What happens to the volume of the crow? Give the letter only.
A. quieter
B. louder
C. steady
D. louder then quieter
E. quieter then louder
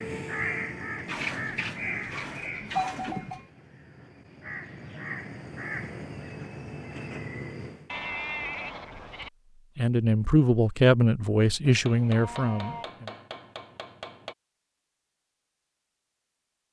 E.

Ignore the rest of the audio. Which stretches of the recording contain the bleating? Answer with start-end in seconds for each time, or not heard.
1.1-3.4, 7.8-9.3, 11.8-12.8.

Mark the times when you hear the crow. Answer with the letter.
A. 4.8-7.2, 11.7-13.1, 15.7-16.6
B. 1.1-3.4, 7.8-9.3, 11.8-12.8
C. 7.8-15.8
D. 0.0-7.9
D.